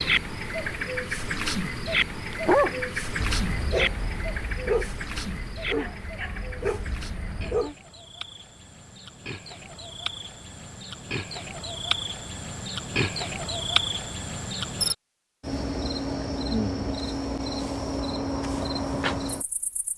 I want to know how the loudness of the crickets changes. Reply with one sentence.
The loudness of the crickets goes down, then up.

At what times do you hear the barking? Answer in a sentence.
The barking can be heard from 2.3 to 7.8 s.